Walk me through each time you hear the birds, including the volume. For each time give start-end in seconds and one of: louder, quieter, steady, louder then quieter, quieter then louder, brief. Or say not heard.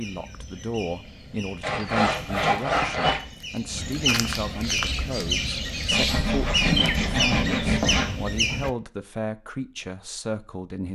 0.0-8.7 louder.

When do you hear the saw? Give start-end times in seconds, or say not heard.
1.6-3.2, 5.9-8.2.